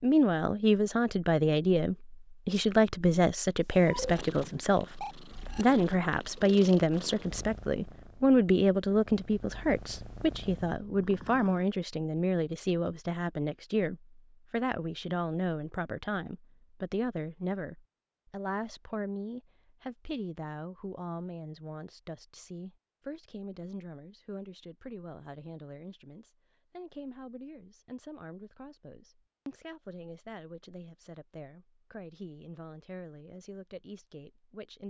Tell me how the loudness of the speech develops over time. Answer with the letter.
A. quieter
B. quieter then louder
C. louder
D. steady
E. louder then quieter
A.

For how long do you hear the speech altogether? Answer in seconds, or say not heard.
35 s.